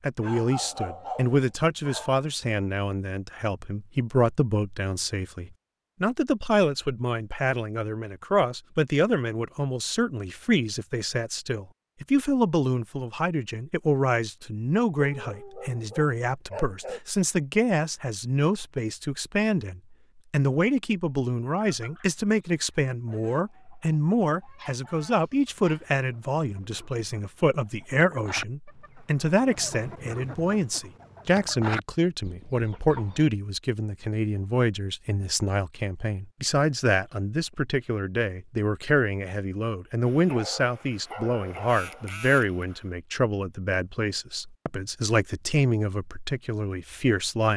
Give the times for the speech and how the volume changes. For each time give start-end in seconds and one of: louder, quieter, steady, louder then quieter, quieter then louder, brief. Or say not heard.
0.0-47.5 steady.